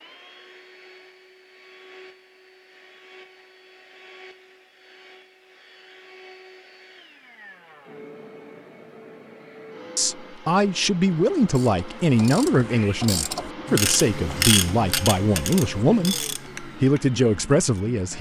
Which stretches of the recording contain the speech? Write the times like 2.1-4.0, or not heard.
9.9-18.1.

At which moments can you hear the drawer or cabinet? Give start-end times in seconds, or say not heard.
not heard.